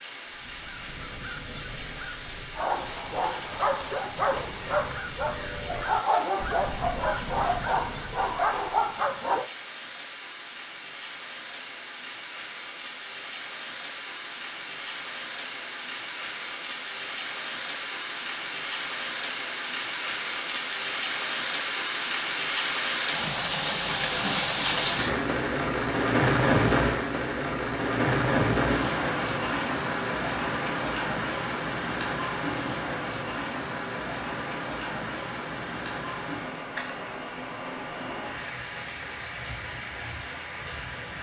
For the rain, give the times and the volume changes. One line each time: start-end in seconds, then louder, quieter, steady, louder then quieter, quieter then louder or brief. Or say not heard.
0.0-41.1 louder then quieter.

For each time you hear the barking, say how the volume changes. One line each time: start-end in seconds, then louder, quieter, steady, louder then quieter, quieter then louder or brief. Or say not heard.
2.5-9.5 steady.